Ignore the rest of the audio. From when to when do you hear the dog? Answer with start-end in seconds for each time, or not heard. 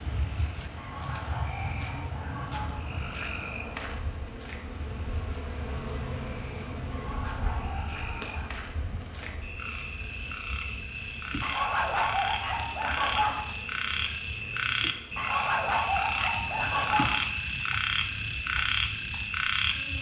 0.8-2.8, 6.9-8.5, 11.4-13.4, 15.2-17.1.